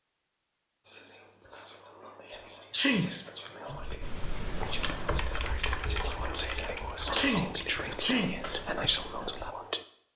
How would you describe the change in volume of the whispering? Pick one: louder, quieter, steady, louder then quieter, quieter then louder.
louder.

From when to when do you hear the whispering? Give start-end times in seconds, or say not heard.
0.8-9.8.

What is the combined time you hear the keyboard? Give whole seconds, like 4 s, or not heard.
6 s.